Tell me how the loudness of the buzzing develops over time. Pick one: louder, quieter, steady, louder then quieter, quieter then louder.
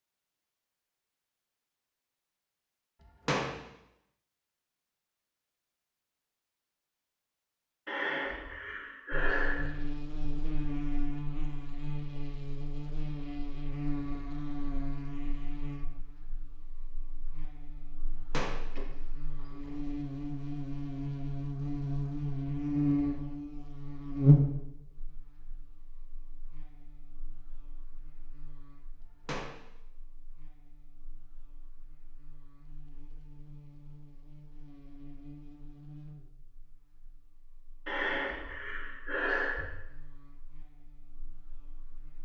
louder then quieter.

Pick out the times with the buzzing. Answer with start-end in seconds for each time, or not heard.
9.1-42.2.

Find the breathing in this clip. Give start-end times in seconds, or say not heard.
7.8-9.7, 37.9-39.6.